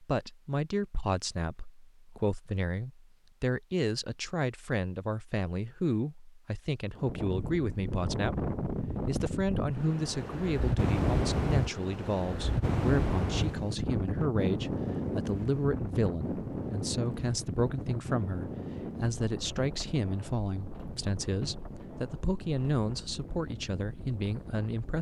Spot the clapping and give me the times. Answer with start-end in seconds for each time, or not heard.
not heard.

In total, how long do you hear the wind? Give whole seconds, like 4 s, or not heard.
18 s.